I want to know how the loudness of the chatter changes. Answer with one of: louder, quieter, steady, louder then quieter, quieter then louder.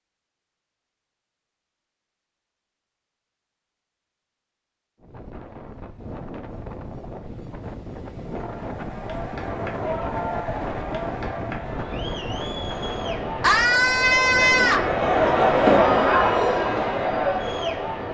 louder.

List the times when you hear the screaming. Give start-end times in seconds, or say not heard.
13.4-14.9.